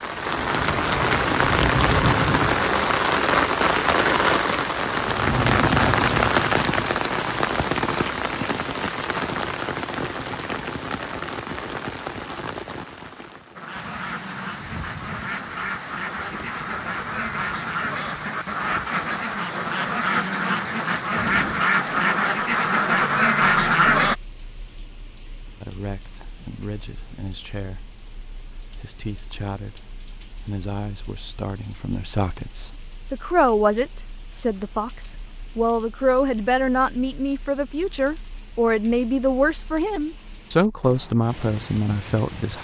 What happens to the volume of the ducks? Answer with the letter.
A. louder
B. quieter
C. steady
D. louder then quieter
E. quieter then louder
A.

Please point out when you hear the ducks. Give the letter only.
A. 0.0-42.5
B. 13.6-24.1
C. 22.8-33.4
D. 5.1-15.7
B.